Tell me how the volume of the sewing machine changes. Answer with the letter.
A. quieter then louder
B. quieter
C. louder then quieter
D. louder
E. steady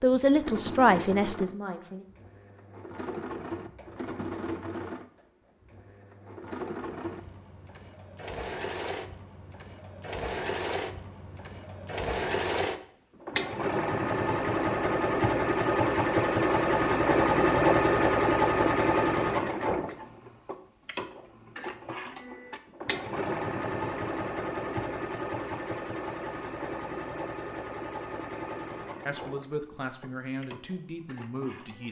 C.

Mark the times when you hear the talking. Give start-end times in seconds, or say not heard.
0.0-2.0, 29.1-31.8.